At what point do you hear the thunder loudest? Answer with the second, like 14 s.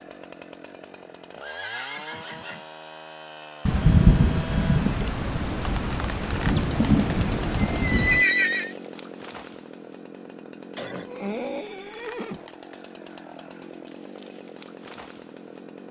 4 s.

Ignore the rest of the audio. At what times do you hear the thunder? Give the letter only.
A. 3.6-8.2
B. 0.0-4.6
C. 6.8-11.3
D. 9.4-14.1
A.